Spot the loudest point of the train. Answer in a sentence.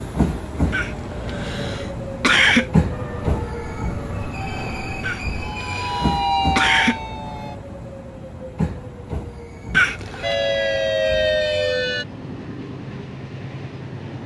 The volume of the train peaks at 3 seconds.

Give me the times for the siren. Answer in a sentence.
The siren can be heard from 2.9 to 7.6 s and from 10.2 to 12.1 s.